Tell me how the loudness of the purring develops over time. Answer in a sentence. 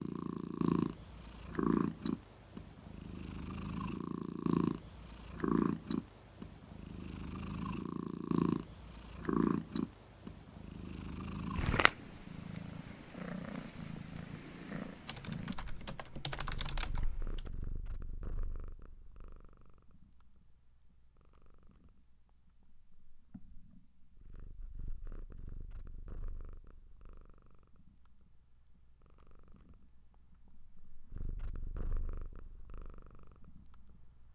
The loudness of the purring goes down.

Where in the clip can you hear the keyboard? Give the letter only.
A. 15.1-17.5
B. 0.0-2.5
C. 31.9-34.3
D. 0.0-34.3
A.